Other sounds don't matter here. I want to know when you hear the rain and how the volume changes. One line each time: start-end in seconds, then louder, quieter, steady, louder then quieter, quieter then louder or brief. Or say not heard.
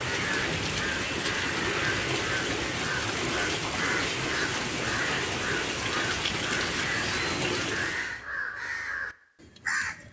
0.0-8.2 steady.